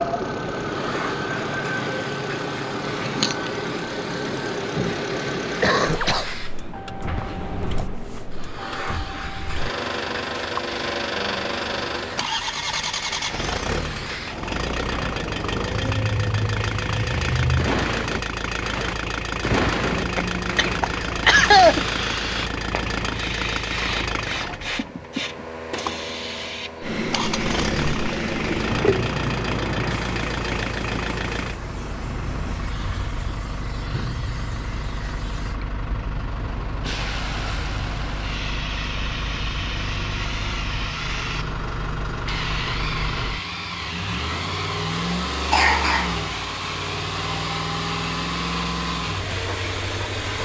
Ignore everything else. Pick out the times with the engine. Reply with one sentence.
You can hear the engine from 0.0 to 50.4 s.